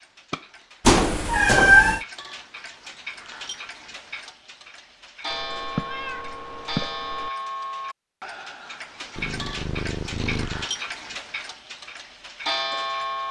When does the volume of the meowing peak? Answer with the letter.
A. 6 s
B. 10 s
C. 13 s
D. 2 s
D.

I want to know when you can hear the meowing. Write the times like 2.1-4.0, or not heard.
0.8-2.0, 5.3-7.3, 9.2-10.7.